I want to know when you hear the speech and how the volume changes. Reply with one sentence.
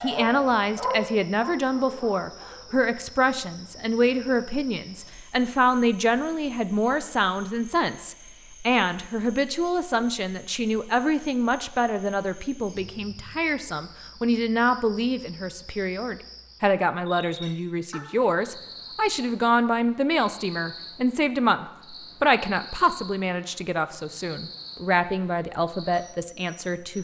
You can hear the speech from 0.0 to 26.9 s, at a steady volume.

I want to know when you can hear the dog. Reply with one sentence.
The dog can be heard from 0.0 to 2.8 s.